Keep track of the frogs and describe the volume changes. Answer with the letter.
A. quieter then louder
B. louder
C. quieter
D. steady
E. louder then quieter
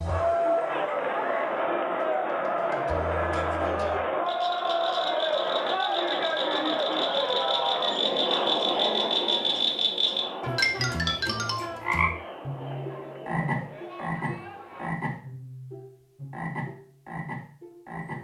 E.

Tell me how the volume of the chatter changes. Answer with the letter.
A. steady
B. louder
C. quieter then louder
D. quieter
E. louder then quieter
D.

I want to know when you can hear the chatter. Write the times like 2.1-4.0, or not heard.
0.0-14.9.